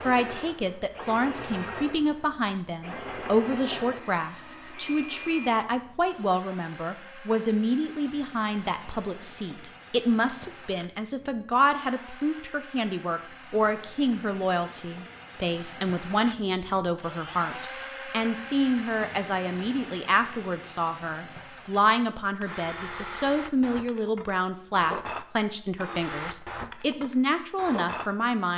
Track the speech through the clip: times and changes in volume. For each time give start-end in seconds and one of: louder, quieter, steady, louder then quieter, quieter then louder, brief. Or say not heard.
0.0-28.5 steady.